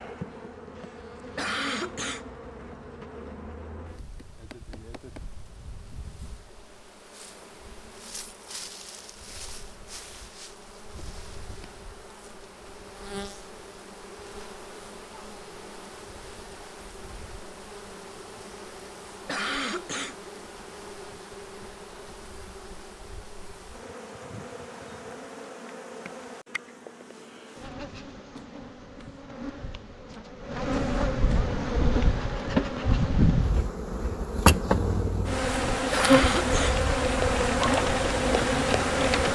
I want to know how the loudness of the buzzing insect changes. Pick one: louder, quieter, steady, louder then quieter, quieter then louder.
louder.